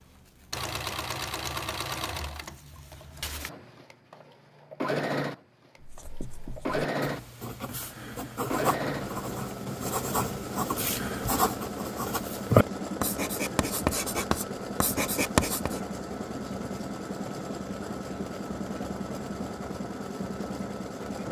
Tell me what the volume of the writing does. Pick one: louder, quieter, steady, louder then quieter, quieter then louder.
louder.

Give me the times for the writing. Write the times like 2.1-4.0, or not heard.
5.8-15.8.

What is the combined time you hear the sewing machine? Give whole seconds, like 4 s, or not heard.
21 s.